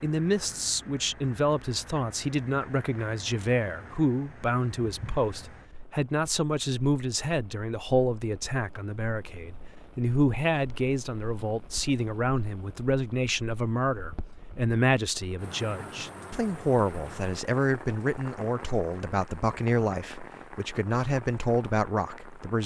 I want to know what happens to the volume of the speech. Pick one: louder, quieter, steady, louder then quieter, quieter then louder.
steady.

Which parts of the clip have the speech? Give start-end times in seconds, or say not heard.
0.0-22.6.